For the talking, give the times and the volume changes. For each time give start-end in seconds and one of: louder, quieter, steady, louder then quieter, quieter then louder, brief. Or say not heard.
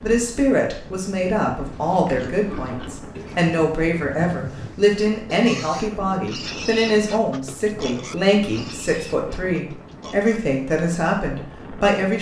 0.0-12.1 steady.